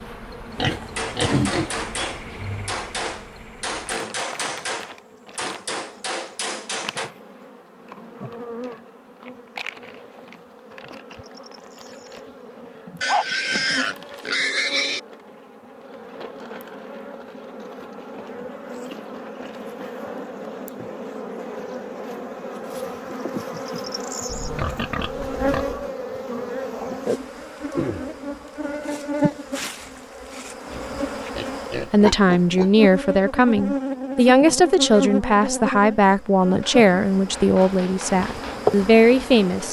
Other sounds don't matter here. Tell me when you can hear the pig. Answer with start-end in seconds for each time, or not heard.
0.6-2.8, 13.0-15.0, 24.2-25.9, 30.7-32.7.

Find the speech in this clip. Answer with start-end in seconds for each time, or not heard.
31.8-39.6.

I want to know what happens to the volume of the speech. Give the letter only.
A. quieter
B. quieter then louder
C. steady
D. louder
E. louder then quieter
C.